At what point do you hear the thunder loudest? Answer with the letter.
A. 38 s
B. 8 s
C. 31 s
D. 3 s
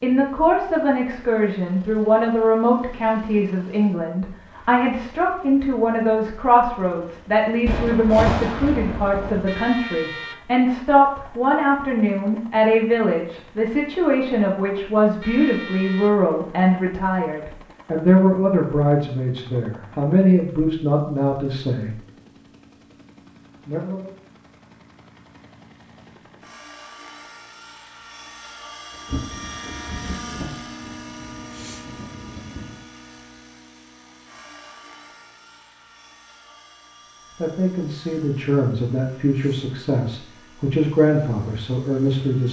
B.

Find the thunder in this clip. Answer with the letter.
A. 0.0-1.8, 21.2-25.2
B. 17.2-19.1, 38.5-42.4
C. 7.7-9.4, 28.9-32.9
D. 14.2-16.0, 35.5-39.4
C.